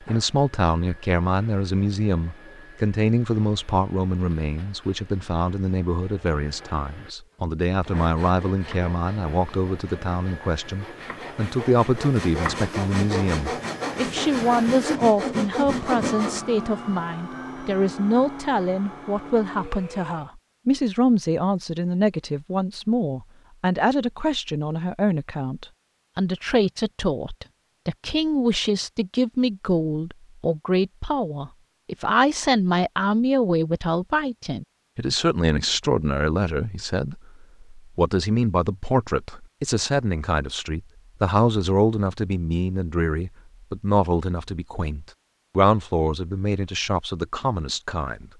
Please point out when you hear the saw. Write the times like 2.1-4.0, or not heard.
7.8-16.4.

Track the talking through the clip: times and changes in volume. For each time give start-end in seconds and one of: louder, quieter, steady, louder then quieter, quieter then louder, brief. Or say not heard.
0.0-48.3 steady.